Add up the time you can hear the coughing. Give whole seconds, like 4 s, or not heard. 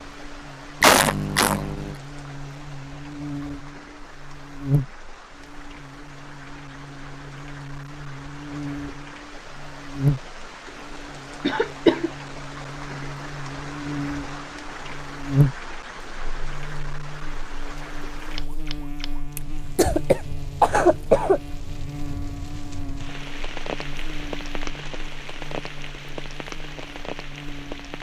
4 s.